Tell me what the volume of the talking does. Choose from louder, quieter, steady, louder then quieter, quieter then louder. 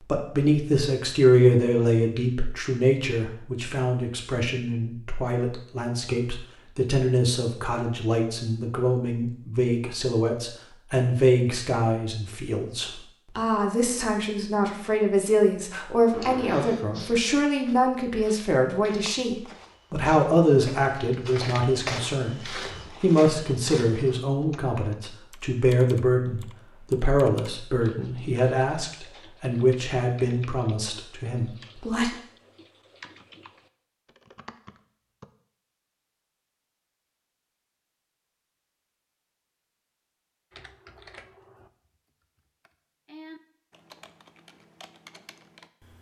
steady.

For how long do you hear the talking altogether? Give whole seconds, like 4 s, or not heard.
32 s.